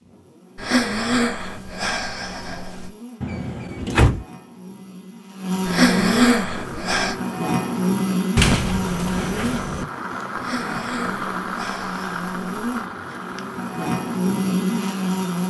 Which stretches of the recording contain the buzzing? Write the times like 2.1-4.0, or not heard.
0.0-15.4.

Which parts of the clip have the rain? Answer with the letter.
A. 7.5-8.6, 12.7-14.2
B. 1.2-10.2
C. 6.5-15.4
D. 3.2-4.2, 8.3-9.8
C.